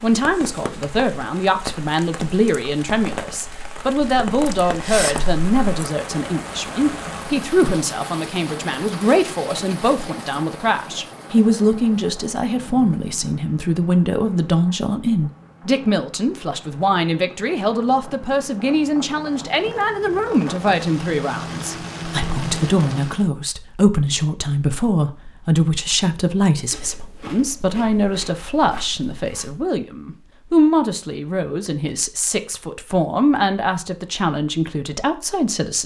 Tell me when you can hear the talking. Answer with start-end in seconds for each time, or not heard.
0.0-35.8.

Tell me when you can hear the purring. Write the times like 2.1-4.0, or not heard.
not heard.